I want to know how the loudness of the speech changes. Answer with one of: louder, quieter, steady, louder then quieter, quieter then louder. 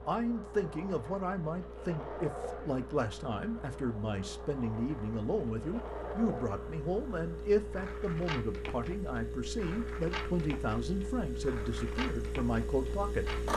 steady.